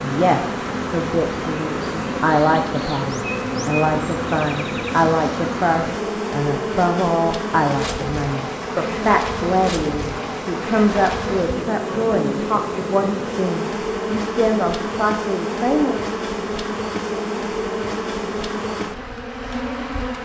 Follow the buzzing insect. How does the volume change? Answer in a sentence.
The loudness of the buzzing insect stays about the same.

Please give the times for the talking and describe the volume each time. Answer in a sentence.
You can hear the talking from 0.0 to 15.9 s, at a steady volume.